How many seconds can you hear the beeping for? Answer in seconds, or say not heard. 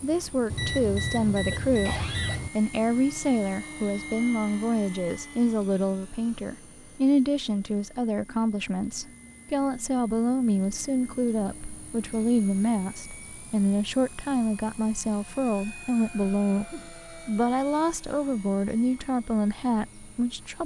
2 s.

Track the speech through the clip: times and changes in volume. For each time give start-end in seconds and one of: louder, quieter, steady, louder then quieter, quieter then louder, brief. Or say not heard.
0.0-20.6 steady.